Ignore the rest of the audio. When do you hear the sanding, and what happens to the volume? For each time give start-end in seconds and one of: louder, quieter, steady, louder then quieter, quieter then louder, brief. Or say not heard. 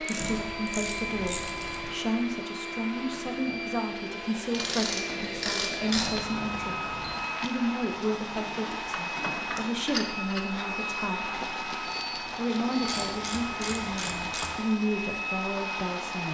not heard.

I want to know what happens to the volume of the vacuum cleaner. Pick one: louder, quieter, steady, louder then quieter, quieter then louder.
steady.